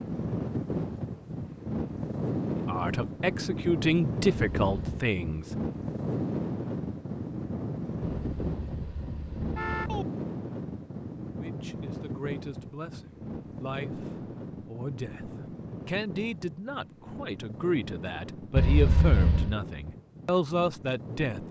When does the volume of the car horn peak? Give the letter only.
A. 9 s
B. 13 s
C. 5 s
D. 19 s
D.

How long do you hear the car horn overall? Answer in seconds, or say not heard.
4 s.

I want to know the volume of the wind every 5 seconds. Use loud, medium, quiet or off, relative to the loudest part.
loud, loud, medium, medium, medium.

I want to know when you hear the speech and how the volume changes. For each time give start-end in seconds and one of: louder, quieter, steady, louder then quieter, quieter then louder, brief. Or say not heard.
2.6-5.5 brief
11.3-21.4 louder.